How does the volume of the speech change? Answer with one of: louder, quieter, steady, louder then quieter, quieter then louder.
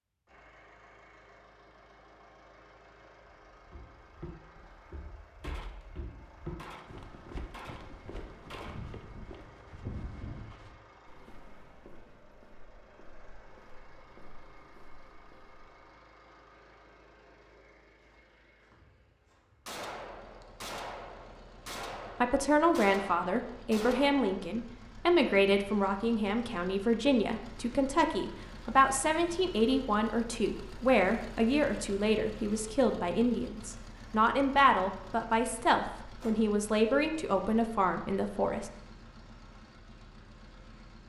steady.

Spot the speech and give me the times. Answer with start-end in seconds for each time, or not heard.
22.2-38.7.